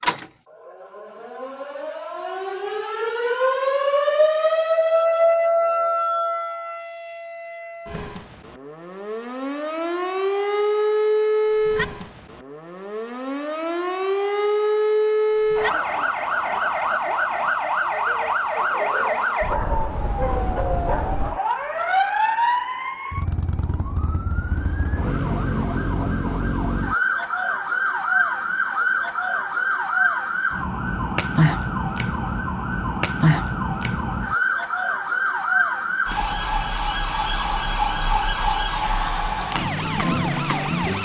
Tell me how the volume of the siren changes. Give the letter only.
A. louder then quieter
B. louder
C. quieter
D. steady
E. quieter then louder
D.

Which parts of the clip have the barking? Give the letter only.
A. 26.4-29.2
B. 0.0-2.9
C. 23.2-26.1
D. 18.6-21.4
D.